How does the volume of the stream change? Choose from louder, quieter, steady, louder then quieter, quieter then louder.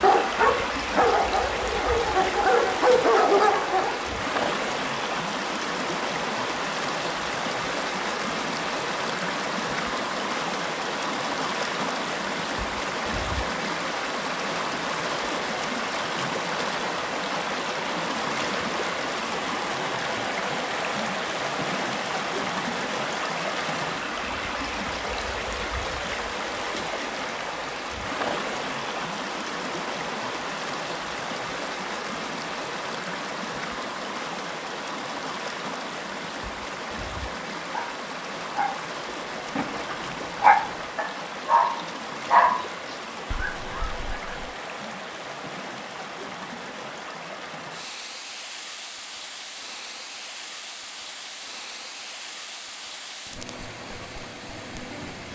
quieter.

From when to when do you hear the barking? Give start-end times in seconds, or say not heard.
0.0-4.2, 37.6-44.4.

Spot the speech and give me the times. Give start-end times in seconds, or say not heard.
not heard.